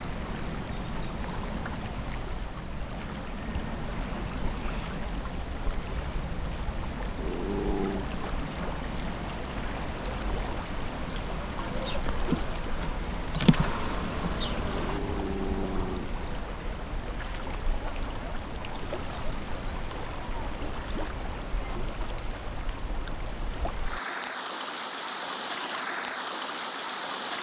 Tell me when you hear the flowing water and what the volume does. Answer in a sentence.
You can hear the flowing water from 0.0 to 27.3 s, at a steady volume.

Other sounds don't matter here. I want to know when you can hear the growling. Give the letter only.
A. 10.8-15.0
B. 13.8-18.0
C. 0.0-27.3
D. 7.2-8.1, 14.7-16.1
D.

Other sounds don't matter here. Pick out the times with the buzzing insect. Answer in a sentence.
You can hear the buzzing insect from 10.8 to 15.0 s.